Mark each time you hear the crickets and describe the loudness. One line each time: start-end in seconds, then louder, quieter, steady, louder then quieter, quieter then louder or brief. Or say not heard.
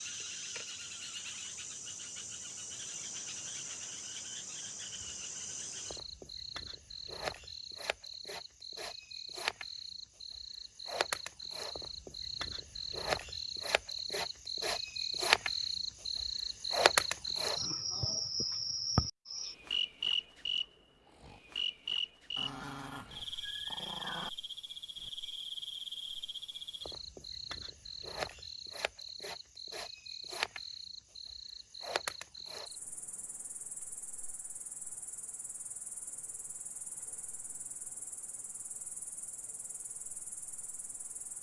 0.0-41.3 louder then quieter.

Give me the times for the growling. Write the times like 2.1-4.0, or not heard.
22.4-24.3.